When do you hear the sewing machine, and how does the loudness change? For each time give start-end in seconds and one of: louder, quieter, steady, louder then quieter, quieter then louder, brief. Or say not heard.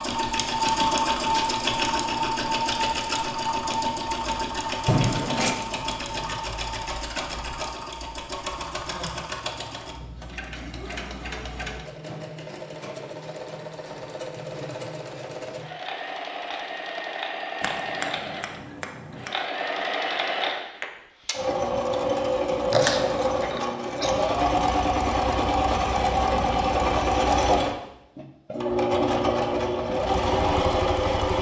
0.0-31.3 quieter then louder.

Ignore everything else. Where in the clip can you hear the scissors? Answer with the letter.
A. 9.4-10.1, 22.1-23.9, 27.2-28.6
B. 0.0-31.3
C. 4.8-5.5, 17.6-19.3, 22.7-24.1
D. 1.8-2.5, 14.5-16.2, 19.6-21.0
C.